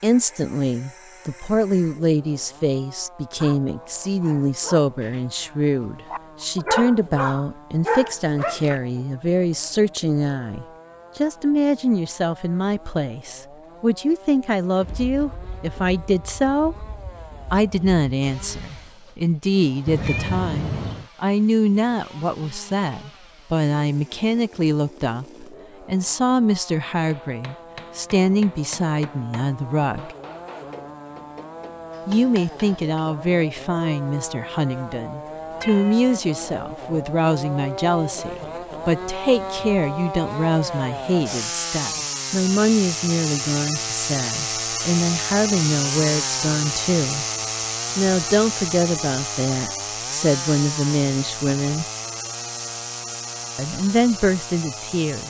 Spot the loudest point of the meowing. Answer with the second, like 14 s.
20 s.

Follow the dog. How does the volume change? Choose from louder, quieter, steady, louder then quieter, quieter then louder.
louder.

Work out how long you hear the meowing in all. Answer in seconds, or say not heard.
2 s.